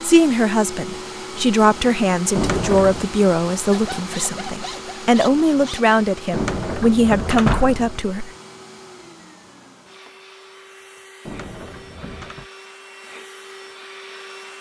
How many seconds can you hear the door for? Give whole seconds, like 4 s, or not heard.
4 s.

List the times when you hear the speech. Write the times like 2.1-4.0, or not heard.
0.0-8.3.